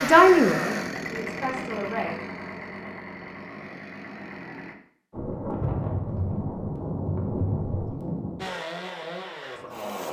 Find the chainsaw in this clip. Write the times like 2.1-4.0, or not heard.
0.0-4.8, 8.3-10.0.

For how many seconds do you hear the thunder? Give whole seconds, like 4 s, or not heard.
3 s.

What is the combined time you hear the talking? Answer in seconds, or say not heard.
2 s.